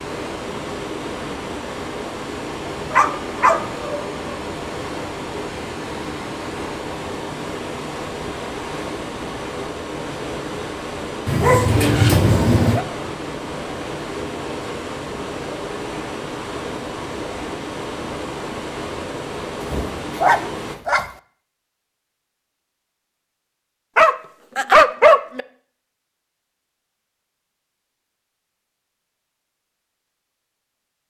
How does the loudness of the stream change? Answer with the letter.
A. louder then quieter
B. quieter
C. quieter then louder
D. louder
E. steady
E.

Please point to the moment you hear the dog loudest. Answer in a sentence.
The volume of the dog peaks at 25 seconds.